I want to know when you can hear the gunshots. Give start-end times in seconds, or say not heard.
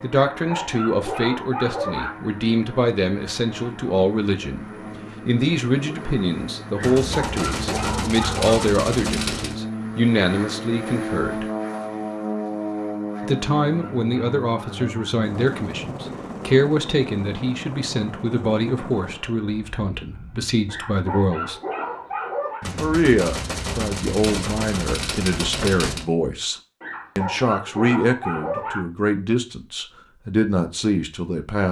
6.8-9.6, 22.6-26.1.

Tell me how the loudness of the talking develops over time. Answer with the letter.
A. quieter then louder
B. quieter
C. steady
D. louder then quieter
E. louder
C.